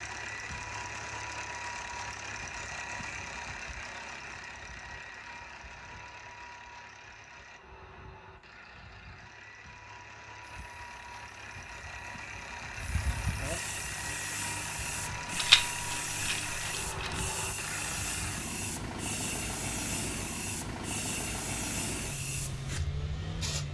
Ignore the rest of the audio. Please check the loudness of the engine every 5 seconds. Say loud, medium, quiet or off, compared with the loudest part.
loud, medium, loud, loud, loud.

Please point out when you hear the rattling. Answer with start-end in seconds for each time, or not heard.
15.3-17.3.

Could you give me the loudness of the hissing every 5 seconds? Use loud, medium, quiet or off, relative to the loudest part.
off, off, loud, loud, loud.